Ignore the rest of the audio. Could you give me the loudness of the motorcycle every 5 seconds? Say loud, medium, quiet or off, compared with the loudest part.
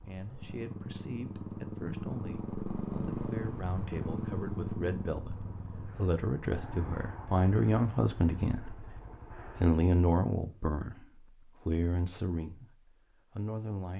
loud, medium, off.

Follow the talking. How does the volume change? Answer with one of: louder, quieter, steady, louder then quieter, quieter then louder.
louder then quieter.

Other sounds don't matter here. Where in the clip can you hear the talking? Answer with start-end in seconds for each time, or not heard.
0.0-13.9.